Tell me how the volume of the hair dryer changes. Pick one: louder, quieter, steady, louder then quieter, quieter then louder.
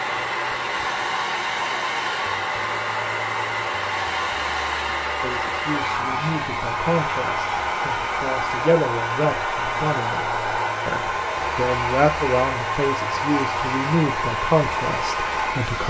steady.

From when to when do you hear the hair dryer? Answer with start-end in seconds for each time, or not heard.
0.0-15.8.